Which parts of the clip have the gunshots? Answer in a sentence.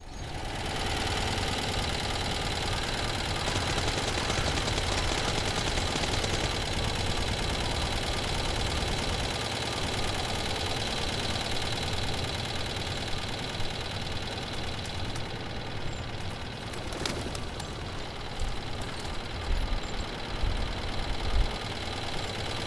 You can hear the gunshots from 3.5 to 6.5 s.